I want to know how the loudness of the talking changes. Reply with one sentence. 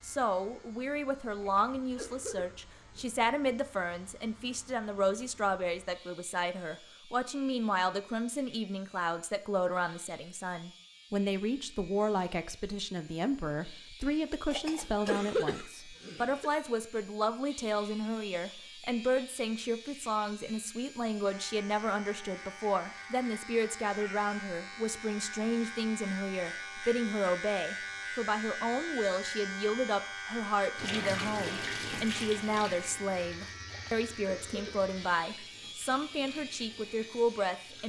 The volume of the talking stays about the same.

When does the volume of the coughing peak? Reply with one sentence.
The volume of the coughing peaks at 15 seconds.